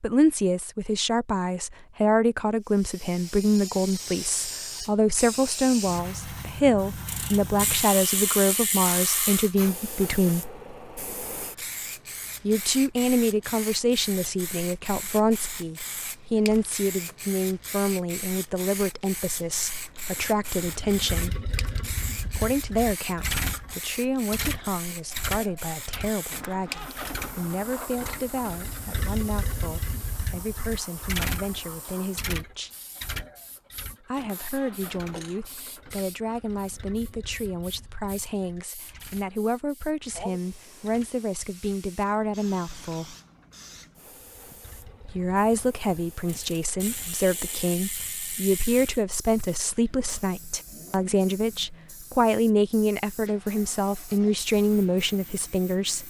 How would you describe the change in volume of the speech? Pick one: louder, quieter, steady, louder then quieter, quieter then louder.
quieter then louder.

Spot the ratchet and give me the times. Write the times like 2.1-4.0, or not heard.
7.0-9.6, 46.2-49.0.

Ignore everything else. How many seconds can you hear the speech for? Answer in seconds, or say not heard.
50 s.